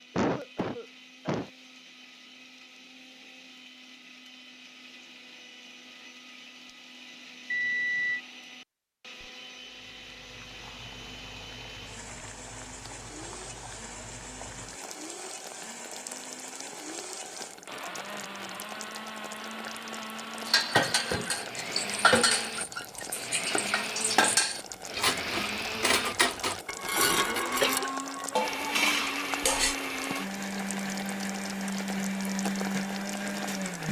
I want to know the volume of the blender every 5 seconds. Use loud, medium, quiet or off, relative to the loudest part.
quiet, quiet, quiet, medium, medium, loud, loud.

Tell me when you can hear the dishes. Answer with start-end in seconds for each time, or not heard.
20.4-29.8.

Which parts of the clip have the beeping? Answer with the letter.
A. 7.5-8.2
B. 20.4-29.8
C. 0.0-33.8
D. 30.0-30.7
A.